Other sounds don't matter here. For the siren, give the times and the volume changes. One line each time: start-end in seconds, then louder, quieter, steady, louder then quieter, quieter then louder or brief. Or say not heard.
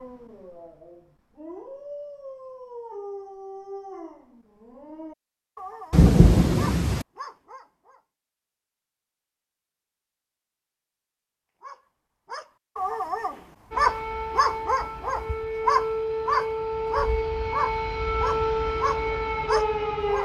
13.7-20.1 louder.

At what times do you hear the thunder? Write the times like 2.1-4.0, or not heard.
5.9-7.0.